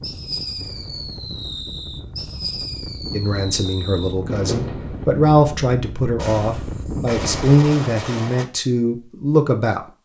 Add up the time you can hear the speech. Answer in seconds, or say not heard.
7 s.